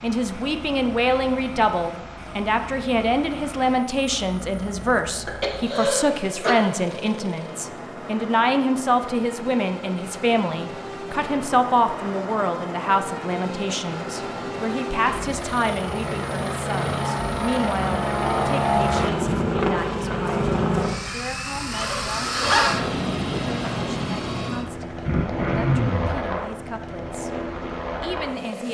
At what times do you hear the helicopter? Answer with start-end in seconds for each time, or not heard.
0.0-28.6.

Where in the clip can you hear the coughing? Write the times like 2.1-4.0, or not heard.
5.2-6.6, 25.1-26.1.